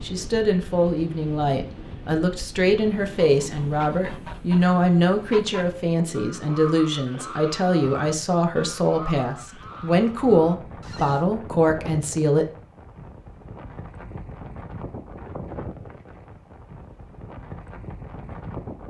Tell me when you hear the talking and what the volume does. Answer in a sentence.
You can hear the talking from 0.0 to 12.4 s, at a steady volume.